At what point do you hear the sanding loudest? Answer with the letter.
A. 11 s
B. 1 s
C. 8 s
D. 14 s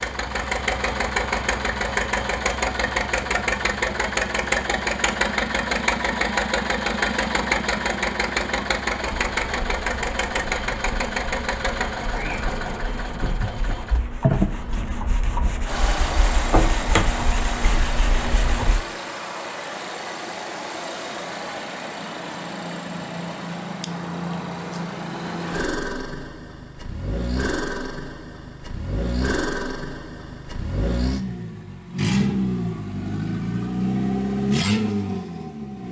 D.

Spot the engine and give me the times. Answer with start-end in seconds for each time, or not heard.
0.0-35.8.